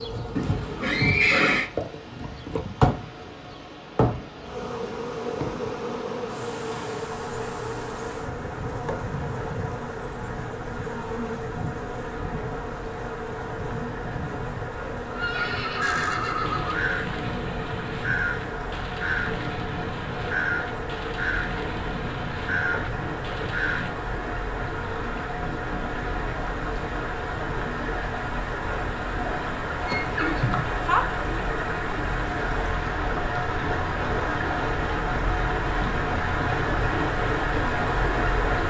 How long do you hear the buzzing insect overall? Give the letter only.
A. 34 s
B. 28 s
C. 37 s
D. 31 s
B.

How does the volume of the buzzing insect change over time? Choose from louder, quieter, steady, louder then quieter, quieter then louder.
quieter.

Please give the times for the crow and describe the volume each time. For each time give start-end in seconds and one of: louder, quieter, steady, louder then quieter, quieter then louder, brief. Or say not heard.
15.8-23.9 steady.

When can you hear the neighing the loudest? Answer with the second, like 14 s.
1 s.